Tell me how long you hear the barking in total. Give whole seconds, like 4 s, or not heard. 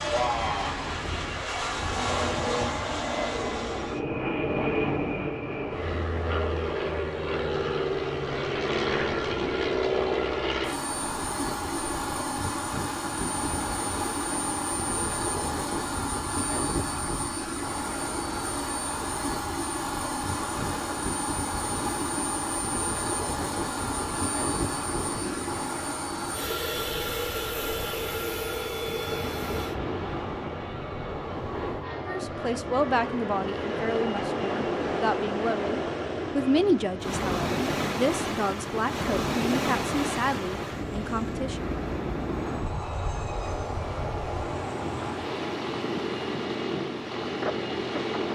not heard.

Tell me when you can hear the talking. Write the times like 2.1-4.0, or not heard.
31.9-41.7.